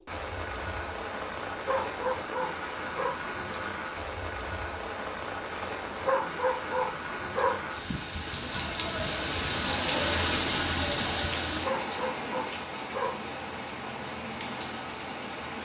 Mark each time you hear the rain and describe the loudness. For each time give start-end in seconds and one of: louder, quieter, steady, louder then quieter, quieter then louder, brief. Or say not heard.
0.0-15.6 louder then quieter.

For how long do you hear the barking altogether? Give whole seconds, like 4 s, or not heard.
5 s.